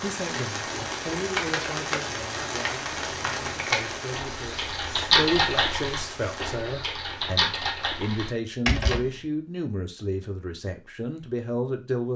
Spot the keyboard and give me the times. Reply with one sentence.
You can hear the keyboard from 1.2 to 9.2 s.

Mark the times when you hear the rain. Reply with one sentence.
The rain can be heard from 0.0 to 6.6 s.